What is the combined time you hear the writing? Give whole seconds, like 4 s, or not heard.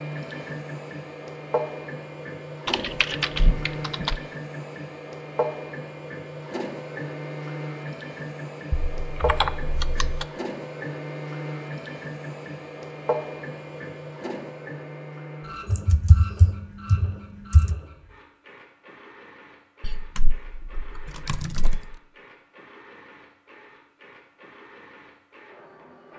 not heard.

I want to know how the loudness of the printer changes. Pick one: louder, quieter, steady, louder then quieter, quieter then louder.
quieter.